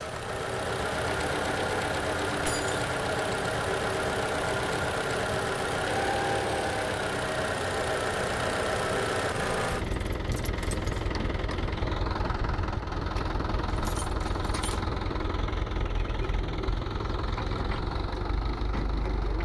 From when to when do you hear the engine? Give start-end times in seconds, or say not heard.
0.0-19.4.